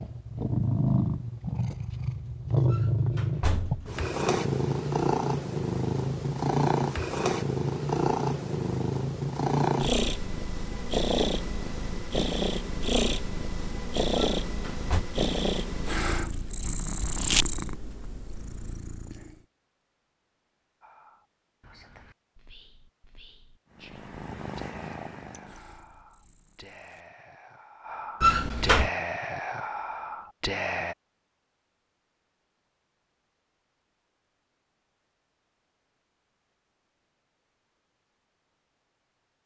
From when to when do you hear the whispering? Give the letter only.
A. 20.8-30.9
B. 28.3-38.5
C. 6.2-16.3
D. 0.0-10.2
A.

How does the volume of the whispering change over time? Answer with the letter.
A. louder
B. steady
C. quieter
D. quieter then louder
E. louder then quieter
A.